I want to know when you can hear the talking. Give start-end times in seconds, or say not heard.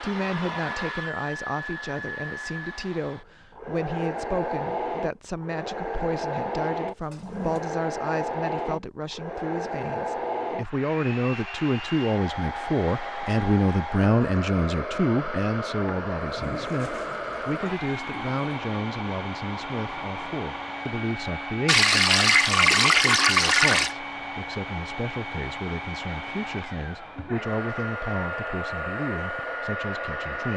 0.0-30.5.